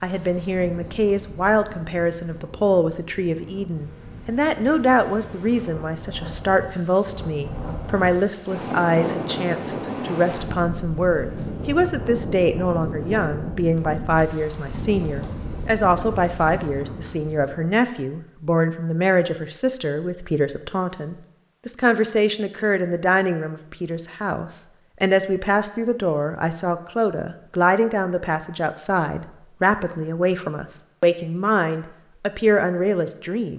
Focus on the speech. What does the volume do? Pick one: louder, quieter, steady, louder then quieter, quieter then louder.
steady.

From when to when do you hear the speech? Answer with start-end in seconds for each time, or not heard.
0.0-33.5.